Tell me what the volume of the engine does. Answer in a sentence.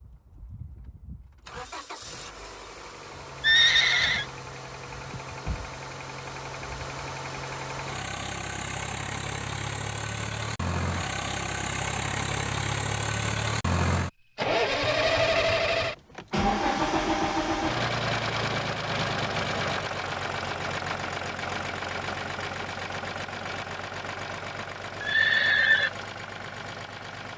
The volume of the engine goes up, then down.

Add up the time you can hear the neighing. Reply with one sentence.
You can hear the neighing for 2 seconds altogether.